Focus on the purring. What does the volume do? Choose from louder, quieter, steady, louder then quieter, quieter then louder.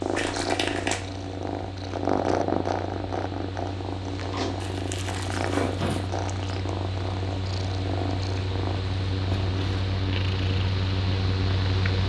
quieter.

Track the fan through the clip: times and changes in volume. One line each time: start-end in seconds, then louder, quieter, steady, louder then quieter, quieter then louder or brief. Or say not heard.
0.0-12.0 louder.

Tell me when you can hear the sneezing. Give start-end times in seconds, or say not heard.
not heard.